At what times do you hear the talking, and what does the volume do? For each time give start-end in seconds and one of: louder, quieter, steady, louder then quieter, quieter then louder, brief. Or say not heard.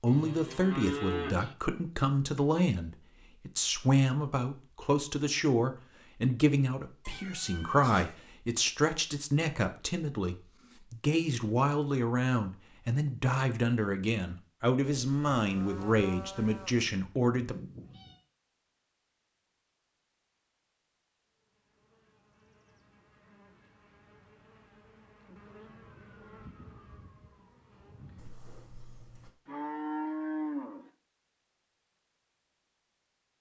0.0-17.6 steady.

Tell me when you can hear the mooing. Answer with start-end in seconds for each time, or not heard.
0.1-1.6, 14.8-16.9, 29.4-30.9.